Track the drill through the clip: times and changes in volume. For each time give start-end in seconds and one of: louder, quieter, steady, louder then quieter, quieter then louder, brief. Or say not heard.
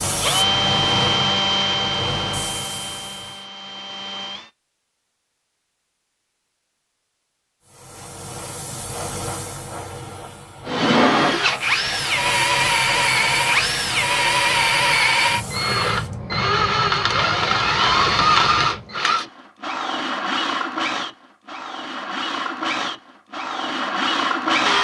0.0-4.5 quieter
10.7-24.7 quieter.